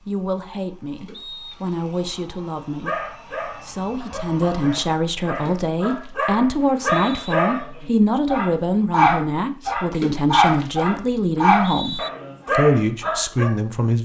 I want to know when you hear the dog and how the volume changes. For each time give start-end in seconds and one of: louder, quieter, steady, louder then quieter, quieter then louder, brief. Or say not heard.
2.9-13.5 louder.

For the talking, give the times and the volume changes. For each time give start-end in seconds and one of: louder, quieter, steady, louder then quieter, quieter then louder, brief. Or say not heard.
0.1-14.0 louder.